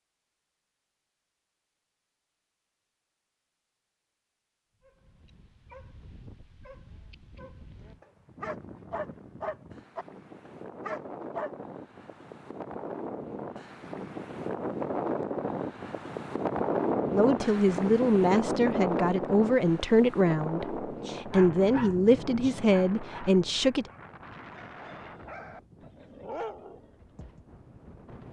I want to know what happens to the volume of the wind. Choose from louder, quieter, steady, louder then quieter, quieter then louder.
louder then quieter.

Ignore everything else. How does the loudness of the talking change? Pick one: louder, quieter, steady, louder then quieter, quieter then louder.
steady.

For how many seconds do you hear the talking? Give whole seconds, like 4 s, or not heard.
7 s.